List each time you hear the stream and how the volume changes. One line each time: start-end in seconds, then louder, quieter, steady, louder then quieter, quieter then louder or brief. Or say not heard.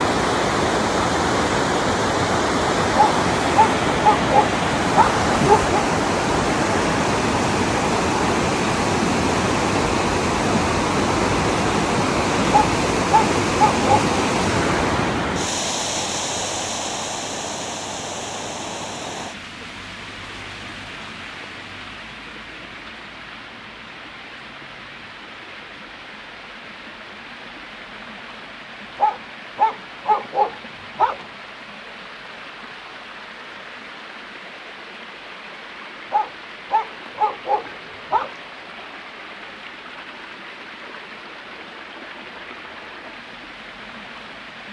0.0-44.6 quieter.